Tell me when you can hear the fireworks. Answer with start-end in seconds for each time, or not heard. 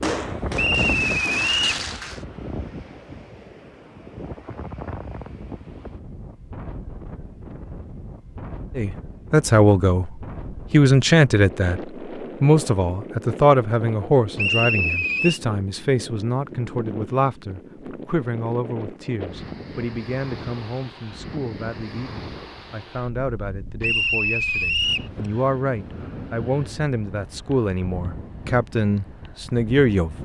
0.0-2.2.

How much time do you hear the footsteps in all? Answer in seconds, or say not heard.
not heard.